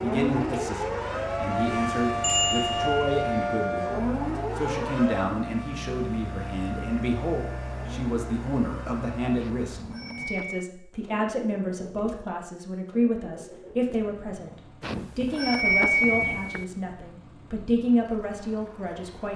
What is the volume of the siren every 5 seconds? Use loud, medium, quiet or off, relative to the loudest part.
loud, medium, off, off.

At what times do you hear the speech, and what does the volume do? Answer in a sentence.
You can hear the speech from 0.0 to 19.3 s, at a steady volume.